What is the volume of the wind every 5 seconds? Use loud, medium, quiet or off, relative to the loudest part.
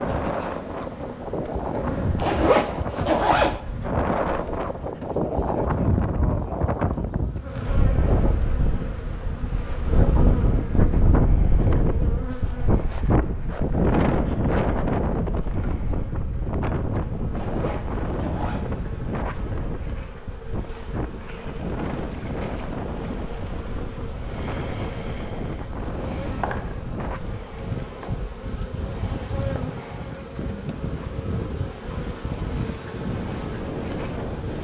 medium, loud, loud, medium, medium, medium, medium.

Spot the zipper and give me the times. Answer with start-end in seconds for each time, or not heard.
2.2-3.6, 17.3-18.6.